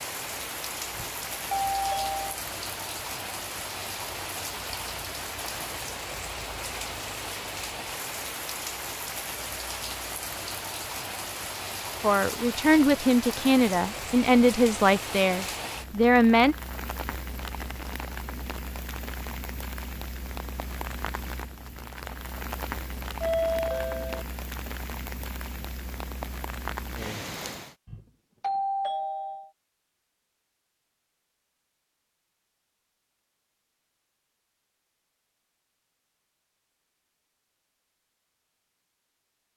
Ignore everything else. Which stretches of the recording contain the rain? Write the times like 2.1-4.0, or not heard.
0.0-27.8.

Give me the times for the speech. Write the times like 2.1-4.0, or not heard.
12.0-16.6.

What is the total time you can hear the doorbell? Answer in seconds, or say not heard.
4 s.